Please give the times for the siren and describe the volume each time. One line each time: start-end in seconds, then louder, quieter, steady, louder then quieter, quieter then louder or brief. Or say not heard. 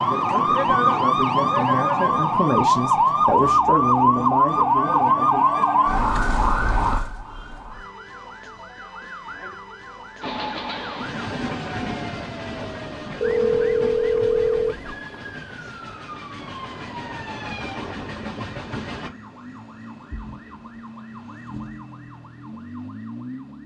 0.0-23.6 quieter.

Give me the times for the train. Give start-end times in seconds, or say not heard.
10.2-19.1.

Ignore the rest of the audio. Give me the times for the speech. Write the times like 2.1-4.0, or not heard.
0.0-5.6.